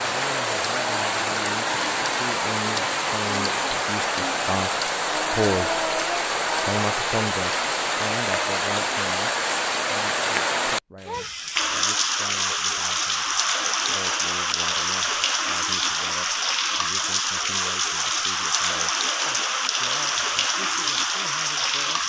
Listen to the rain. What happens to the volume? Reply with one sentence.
The loudness of the rain stays about the same.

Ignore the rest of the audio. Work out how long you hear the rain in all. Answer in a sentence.
The rain can be heard for 22 seconds in total.